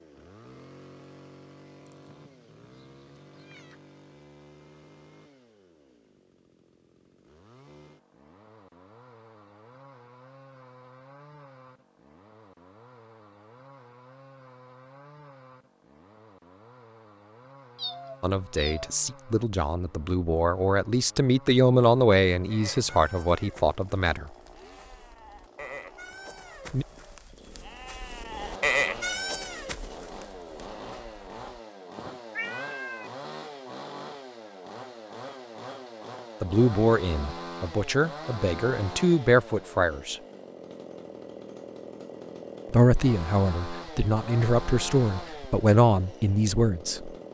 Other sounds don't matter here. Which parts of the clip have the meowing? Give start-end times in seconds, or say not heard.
1.9-3.8, 17.8-18.9, 32.3-33.1.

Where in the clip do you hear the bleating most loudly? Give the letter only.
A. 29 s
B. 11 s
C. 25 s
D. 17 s
A.